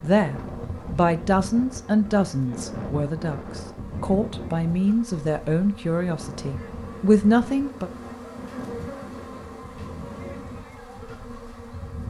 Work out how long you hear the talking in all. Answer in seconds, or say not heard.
8 s.